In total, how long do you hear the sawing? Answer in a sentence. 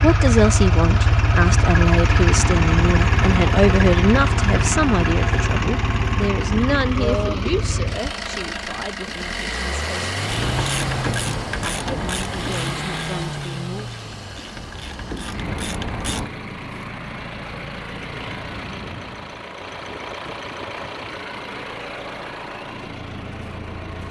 You can't hear the sawing here.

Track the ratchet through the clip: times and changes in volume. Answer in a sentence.
The ratchet can be heard from 10.2 to 16.3 s, getting quieter then louder.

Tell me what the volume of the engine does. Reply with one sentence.
The volume of the engine goes down.